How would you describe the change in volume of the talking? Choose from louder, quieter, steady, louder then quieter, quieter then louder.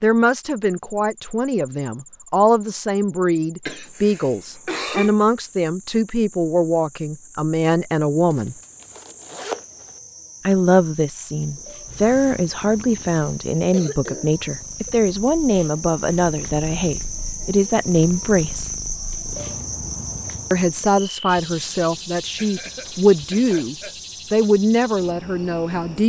steady.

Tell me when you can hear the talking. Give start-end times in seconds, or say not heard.
0.0-8.6, 10.4-18.8, 20.5-26.0.